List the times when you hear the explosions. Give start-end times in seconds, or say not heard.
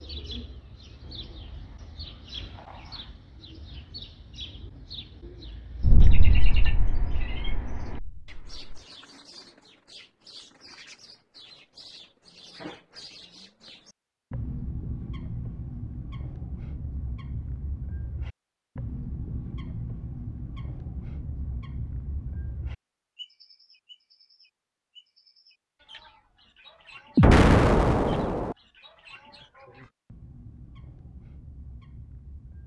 5.8-8.8, 27.1-28.6.